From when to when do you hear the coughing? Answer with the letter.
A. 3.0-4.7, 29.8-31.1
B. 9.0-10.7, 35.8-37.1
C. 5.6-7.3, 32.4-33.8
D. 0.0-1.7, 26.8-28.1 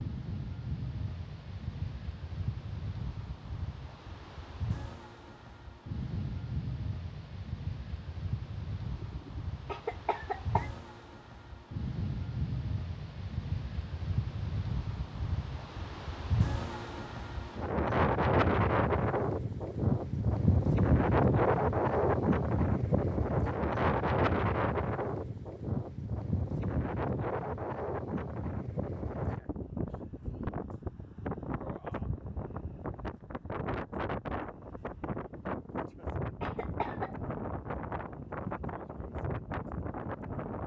B.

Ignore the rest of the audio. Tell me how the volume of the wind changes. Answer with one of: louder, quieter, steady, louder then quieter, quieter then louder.
louder then quieter.